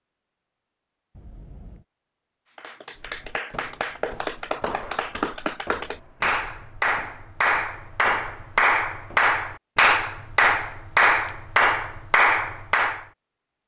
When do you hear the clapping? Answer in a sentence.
You can hear the clapping from 2.5 to 13.1 s.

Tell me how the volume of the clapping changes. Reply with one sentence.
The volume of the clapping goes up.